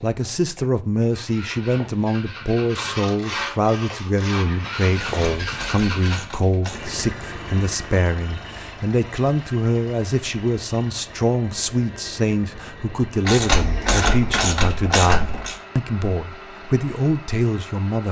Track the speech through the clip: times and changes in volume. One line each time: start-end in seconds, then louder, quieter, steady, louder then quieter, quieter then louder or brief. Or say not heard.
0.0-18.0 steady.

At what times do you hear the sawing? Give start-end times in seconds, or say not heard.
2.7-5.5.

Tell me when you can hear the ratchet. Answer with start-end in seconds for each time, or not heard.
5.0-7.0, 13.2-15.6.